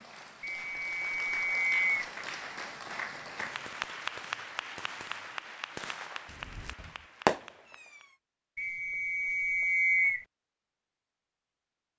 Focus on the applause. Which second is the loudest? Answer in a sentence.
The loudest moment of the applause is at 4 seconds.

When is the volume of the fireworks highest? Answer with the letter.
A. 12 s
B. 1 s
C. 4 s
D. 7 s
D.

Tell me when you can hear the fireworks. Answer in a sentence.
The fireworks can be heard from 3.2 to 8.2 s.